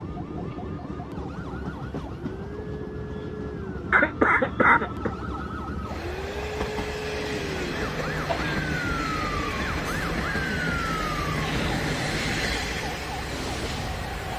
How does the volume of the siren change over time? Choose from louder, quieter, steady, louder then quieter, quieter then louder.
louder.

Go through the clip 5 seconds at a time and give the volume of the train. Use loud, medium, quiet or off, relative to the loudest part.
medium, loud, loud.